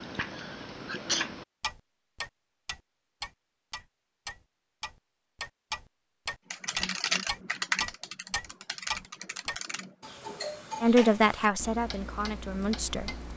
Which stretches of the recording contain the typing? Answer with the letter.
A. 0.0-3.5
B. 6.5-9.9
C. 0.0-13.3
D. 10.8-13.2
B.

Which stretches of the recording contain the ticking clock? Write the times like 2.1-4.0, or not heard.
0.0-13.3.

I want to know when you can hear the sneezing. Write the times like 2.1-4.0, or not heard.
0.2-1.3.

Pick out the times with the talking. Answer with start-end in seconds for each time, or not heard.
10.8-13.2.